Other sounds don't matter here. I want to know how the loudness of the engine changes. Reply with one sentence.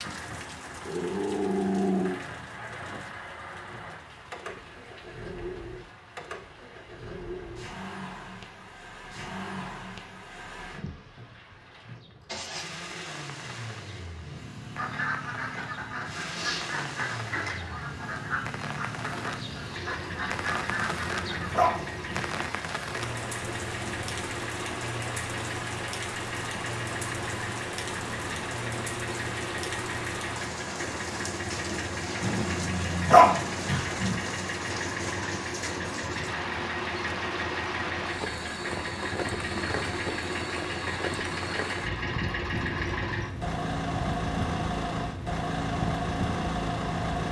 The loudness of the engine goes up.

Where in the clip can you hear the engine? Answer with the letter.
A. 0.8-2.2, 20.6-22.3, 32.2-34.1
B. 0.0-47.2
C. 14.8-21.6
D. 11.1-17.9
B.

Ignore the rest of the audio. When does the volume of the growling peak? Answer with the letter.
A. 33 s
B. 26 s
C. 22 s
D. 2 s
A.